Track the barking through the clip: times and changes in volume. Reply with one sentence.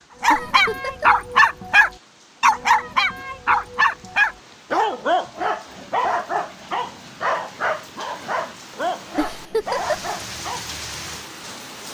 The barking can be heard from 0.2 to 10.7 s, getting quieter.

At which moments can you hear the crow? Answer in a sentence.
The crow can't be heard in this clip.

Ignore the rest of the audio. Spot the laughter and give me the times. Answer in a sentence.
The laughter can be heard from 0.3 to 1.2 s and from 9.2 to 10.1 s.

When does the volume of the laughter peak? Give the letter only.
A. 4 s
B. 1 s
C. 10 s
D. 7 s
C.